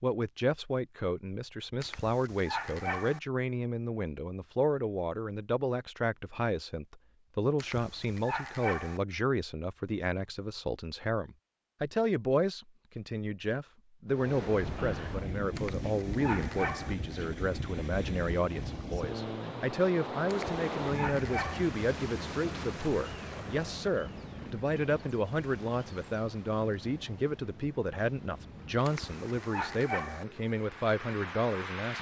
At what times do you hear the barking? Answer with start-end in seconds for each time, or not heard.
1.8-3.2, 7.5-9.0, 15.6-16.9, 20.3-21.7, 28.9-30.2.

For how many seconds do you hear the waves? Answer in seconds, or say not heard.
18 s.